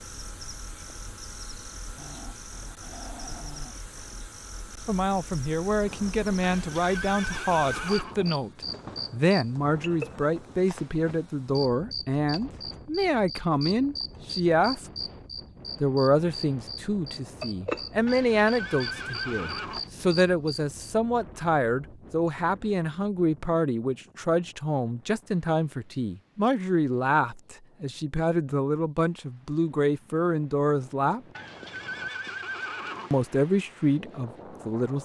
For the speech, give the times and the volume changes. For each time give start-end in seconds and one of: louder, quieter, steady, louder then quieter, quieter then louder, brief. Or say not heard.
4.8-14.8 steady
15.8-31.2 steady
33.1-35.0 brief.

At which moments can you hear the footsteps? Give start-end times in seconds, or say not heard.
not heard.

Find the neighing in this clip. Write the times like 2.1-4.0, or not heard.
6.4-8.2, 18.1-19.9, 31.4-33.1.